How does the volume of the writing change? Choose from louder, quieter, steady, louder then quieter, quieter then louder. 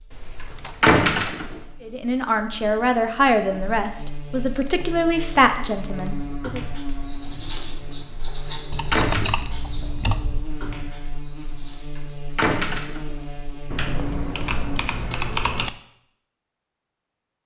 quieter.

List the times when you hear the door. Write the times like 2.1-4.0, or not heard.
0.8-1.6, 8.9-9.3, 12.3-13.2.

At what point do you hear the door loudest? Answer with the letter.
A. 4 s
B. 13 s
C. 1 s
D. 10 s
C.